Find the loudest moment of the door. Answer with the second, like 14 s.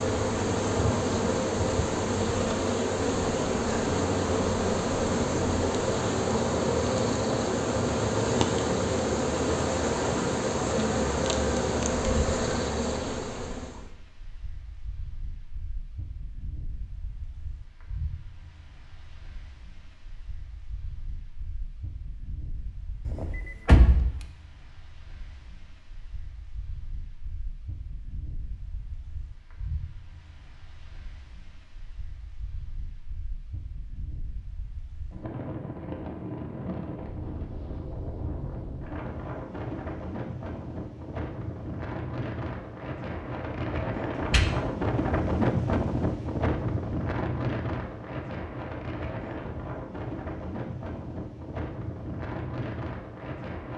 24 s.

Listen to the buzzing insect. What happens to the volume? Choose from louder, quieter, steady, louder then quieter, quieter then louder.
steady.